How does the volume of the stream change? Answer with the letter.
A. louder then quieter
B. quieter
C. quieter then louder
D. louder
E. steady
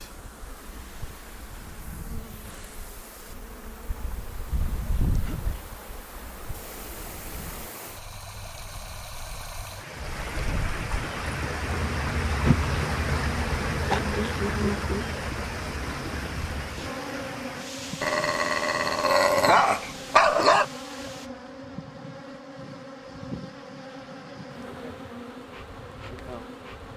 A.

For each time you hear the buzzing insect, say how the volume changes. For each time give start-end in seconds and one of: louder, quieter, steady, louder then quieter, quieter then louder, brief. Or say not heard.
0.0-7.7 louder then quieter
9.9-26.9 quieter.